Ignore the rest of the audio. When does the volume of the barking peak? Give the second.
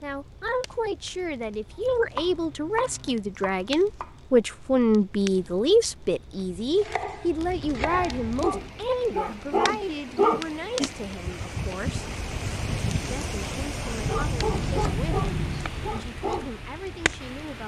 10 s.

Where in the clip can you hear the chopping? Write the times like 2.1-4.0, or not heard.
1.9-4.1, 6.8-8.3, 14.1-15.7.